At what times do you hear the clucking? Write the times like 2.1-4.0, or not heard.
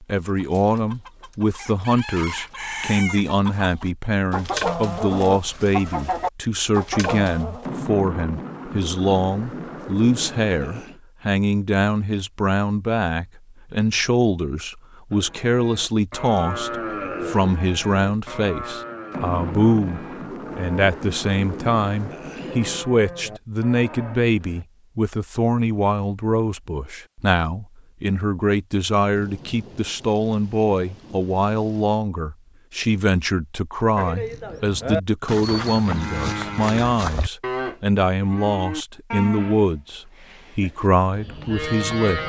0.2-7.7.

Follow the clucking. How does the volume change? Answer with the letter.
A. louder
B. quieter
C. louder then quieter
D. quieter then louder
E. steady
A.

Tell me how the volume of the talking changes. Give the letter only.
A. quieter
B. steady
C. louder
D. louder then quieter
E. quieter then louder
B.